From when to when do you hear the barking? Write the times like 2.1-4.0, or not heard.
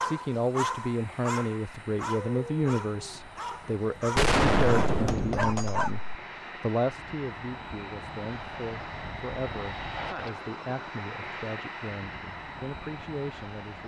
0.0-6.0.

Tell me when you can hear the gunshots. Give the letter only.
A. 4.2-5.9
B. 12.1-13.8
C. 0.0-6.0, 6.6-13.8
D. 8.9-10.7
A.